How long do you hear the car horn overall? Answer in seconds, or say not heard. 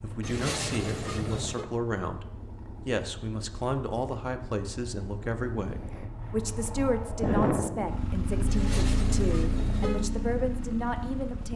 3 s.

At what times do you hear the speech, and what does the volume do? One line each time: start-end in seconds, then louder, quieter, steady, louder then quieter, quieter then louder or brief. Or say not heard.
0.0-11.5 steady.